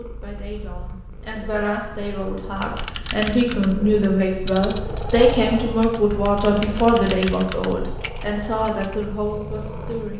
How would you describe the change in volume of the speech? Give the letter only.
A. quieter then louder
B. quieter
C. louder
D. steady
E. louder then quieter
E.